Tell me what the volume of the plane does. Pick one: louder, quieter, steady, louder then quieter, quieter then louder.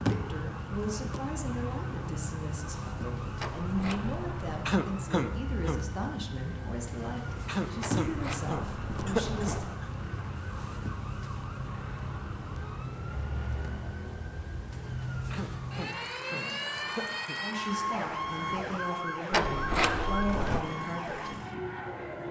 steady.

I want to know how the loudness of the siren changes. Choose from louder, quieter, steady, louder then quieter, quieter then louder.
louder.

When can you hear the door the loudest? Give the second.
20 s.